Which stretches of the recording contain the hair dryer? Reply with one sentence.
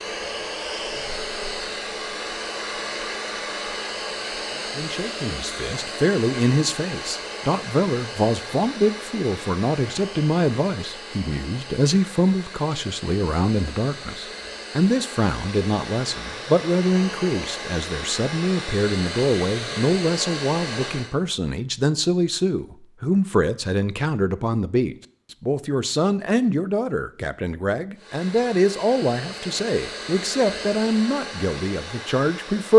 You can hear the hair dryer from 0.0 to 21.1 s and from 27.9 to 32.7 s.